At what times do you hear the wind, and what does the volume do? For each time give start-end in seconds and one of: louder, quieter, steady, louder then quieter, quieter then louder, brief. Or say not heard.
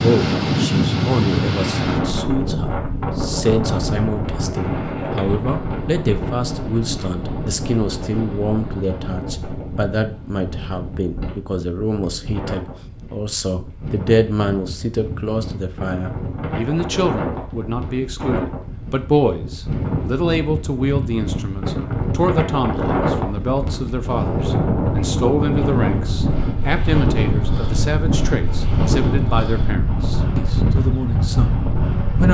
0.0-32.3 quieter then louder.